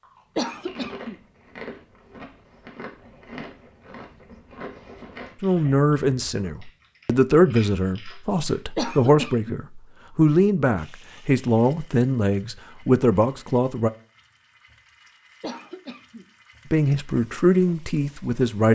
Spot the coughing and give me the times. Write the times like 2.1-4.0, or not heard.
0.3-1.1, 8.8-9.6, 15.4-16.2.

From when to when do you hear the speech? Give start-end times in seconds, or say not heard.
5.4-13.9, 16.7-18.7.